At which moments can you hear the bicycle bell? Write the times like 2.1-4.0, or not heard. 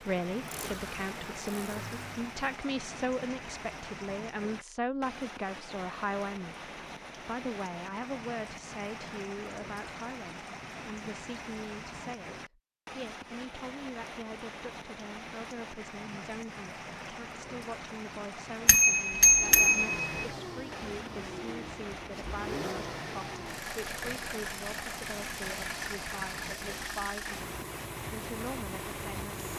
18.6-20.1.